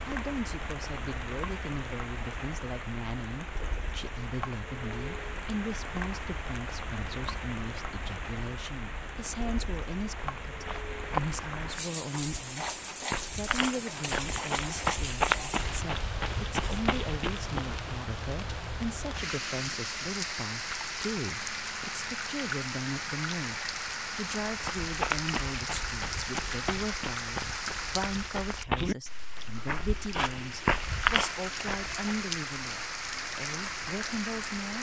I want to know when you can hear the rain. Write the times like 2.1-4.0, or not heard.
0.0-34.7.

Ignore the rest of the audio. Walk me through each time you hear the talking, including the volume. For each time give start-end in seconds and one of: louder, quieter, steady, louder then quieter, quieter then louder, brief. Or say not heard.
0.1-34.7 steady.